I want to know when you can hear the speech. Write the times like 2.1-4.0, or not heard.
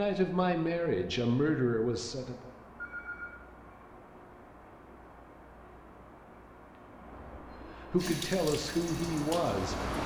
0.0-2.5, 7.2-10.0.